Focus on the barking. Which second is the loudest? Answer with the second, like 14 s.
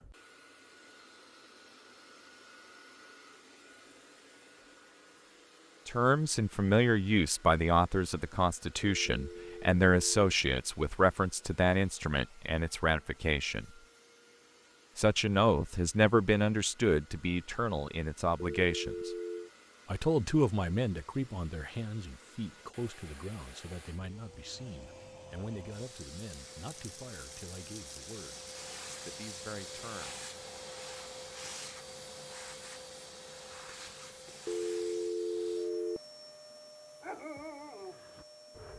37 s.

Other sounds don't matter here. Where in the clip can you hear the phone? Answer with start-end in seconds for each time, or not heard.
8.8-10.3, 18.6-19.5, 34.5-36.0.